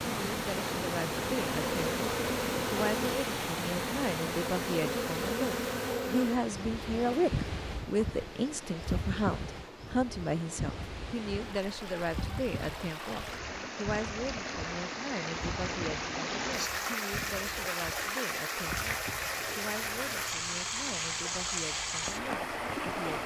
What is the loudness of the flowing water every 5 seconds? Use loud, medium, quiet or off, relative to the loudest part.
loud, medium, medium, loud, loud.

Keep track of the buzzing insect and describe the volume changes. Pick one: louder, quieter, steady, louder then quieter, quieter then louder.
quieter.